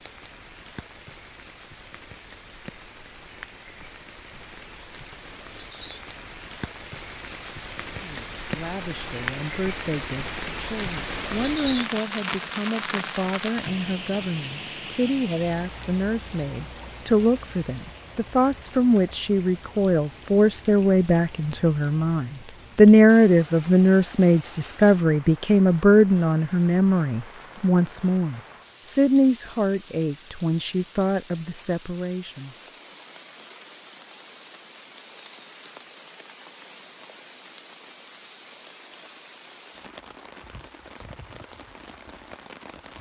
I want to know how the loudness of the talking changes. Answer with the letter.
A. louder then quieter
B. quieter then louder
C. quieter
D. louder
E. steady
A.